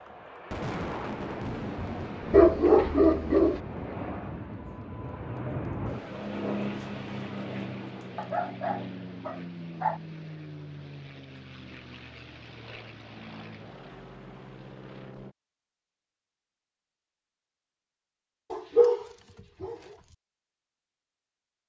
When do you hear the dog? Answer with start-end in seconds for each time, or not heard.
2.3-3.6, 8.2-10.0, 18.5-20.1.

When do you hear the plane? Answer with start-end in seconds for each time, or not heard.
0.0-15.3.